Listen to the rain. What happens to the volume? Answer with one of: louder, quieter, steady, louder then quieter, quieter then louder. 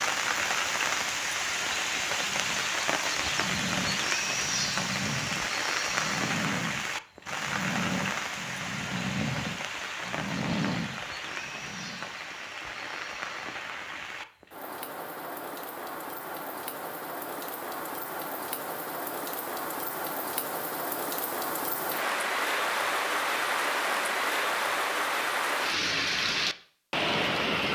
quieter then louder.